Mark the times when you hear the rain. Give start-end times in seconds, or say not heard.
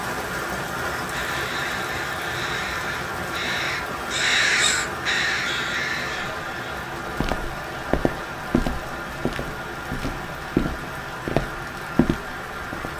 0.0-12.9.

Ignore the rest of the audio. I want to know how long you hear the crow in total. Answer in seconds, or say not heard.
6 s.